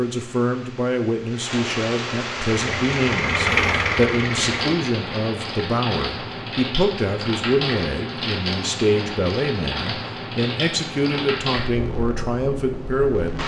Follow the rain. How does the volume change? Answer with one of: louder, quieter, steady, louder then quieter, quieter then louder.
steady.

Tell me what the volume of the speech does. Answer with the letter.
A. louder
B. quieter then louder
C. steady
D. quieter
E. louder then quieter
C.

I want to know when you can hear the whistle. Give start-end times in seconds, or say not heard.
not heard.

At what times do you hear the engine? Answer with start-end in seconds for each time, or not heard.
2.4-4.8.